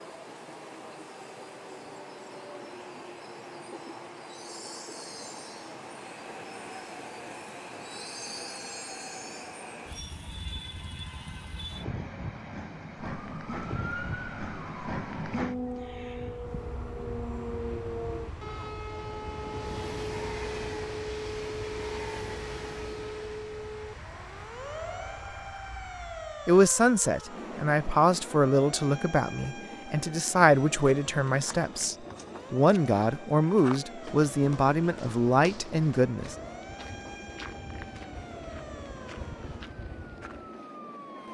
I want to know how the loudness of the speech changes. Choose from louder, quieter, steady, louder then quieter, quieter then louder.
steady.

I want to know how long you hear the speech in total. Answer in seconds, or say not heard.
10 s.